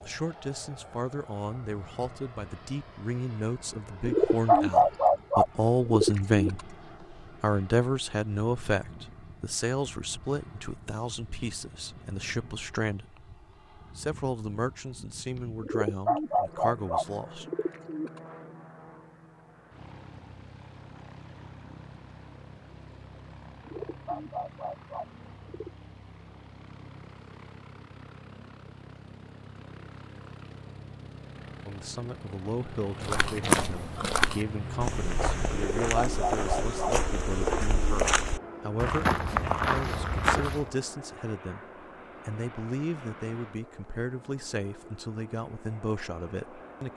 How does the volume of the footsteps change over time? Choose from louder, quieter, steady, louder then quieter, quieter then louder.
quieter then louder.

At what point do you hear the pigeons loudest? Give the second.
5 s.